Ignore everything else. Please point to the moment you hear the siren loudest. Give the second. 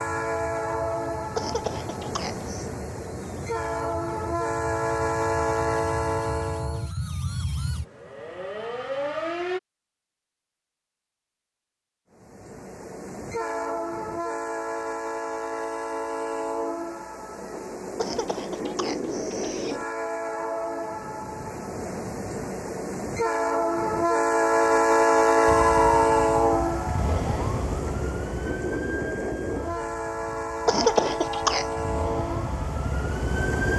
26 s.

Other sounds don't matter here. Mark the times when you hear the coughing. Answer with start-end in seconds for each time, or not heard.
1.4-2.7, 17.9-19.8, 30.6-31.6.